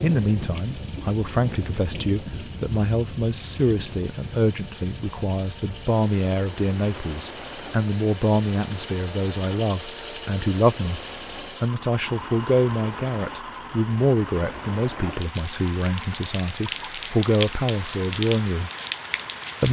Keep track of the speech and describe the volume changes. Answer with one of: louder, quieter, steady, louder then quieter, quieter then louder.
steady.